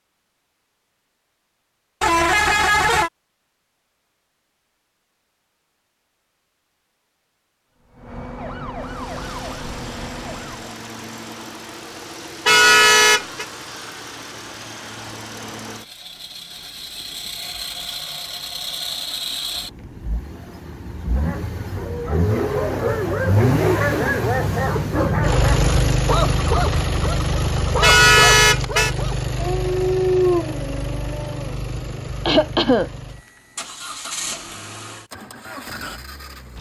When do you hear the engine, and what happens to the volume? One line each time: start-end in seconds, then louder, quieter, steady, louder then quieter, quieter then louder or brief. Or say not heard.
8.8-36.5 louder then quieter.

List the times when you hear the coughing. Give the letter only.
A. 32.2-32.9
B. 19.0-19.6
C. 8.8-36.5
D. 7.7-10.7
A.